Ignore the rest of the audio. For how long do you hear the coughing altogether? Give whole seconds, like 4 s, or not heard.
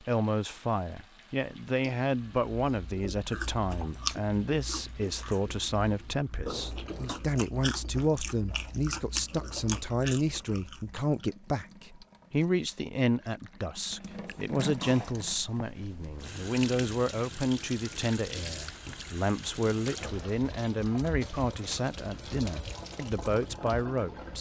2 s.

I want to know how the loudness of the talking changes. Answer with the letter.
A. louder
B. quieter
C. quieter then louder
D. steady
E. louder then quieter
D.